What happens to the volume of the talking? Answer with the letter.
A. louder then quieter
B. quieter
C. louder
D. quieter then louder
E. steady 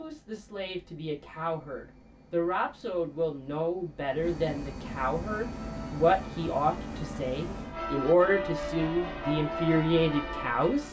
C.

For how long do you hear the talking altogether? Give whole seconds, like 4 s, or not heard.
11 s.